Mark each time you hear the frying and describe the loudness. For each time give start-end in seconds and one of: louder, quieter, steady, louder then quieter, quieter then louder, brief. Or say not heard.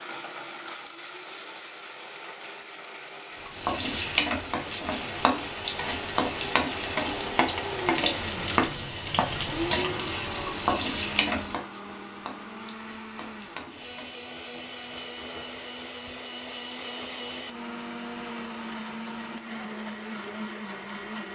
3.4-16.1 quieter.